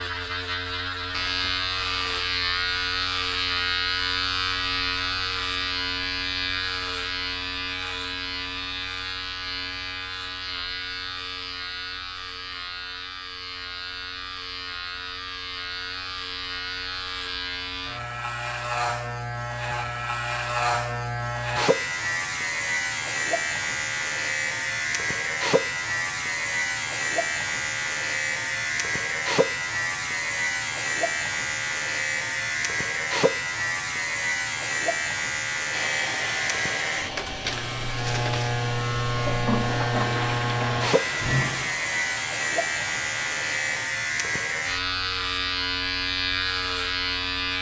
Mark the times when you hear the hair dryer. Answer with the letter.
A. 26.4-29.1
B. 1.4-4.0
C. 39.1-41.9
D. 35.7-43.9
D.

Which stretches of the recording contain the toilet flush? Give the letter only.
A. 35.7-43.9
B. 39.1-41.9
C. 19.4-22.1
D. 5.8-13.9
B.